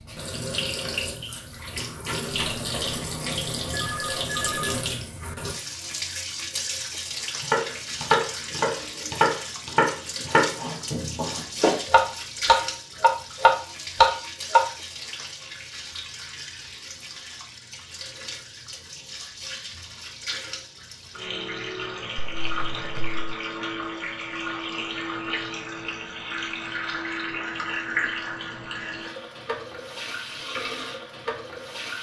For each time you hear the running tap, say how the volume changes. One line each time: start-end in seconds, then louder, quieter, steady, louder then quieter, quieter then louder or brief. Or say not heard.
0.0-31.9 quieter then louder.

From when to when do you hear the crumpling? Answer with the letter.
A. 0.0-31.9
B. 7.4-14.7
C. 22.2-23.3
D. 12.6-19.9
C.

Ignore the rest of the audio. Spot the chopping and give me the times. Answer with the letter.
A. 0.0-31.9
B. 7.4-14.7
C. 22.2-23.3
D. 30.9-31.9
B.